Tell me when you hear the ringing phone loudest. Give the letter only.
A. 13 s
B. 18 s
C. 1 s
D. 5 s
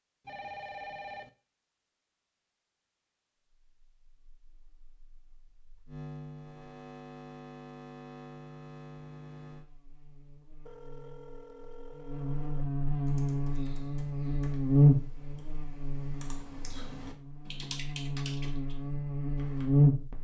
C.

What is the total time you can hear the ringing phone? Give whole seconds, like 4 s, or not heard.
3 s.